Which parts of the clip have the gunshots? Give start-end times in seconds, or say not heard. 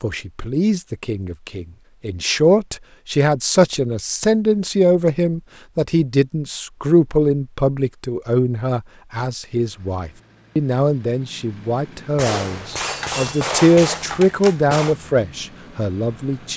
12.2-14.9.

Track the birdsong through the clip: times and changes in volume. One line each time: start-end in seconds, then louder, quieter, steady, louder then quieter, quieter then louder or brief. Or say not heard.
not heard.